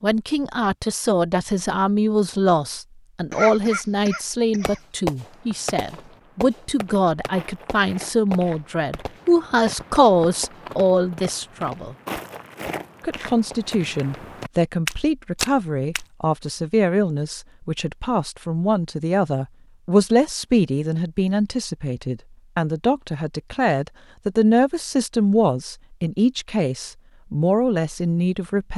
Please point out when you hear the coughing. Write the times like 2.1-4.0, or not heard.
3.3-4.8.